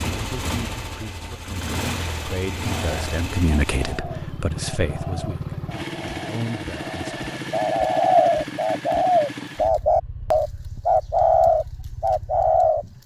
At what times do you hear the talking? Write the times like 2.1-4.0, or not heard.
0.1-7.2.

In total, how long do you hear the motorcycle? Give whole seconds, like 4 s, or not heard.
13 s.